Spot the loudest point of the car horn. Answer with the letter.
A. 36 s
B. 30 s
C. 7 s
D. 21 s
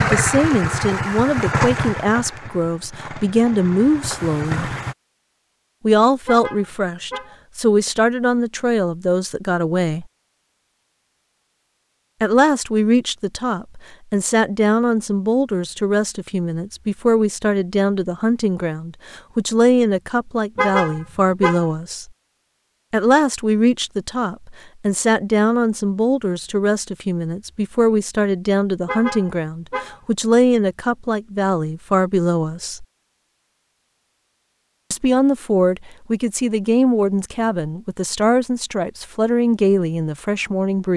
D.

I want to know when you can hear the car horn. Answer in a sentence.
The car horn can be heard from 6.2 to 7.3 s, from 20.6 to 21.7 s and from 28.9 to 30.0 s.